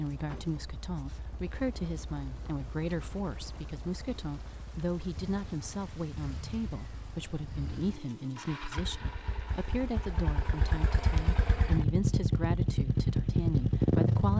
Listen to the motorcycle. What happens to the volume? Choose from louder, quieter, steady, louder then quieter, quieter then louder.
louder.